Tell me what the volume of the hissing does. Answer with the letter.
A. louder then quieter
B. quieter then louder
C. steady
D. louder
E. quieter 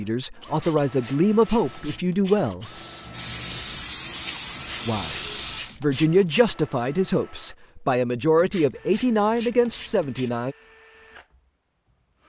D.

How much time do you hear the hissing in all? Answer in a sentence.
You can hear the hissing for 4 seconds altogether.